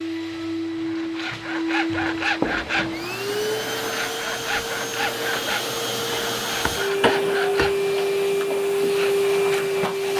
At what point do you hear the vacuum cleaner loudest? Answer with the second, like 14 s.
9 s.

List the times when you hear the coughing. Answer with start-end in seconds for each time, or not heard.
2.4-3.0, 6.1-8.1.